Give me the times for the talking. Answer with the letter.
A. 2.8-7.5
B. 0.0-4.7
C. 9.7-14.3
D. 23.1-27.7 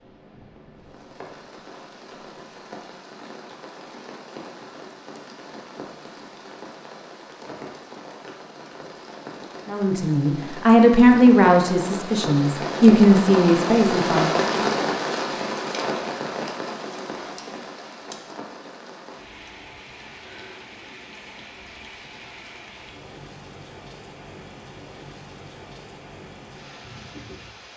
C.